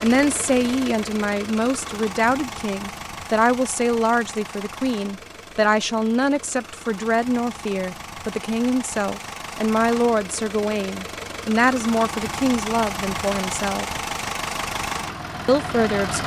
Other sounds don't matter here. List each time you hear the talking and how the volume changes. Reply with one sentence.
The talking can be heard from 0.0 to 13.8 s, at a steady volume; and briefly from 15.4 to 16.2 s.